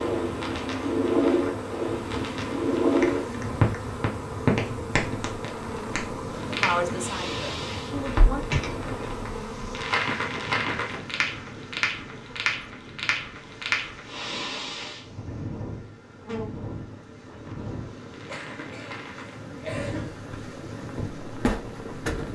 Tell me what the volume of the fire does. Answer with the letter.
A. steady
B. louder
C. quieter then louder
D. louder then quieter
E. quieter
E.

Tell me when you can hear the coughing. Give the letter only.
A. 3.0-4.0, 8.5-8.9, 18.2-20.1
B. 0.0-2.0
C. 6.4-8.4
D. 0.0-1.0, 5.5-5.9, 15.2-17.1
A.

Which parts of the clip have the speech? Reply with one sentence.
The speech can be heard from 6.4 to 8.4 s.